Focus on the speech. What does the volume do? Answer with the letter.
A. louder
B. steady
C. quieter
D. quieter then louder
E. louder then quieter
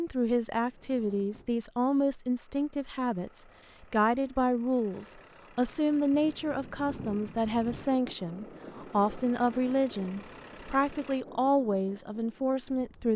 B.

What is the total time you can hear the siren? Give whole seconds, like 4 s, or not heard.
not heard.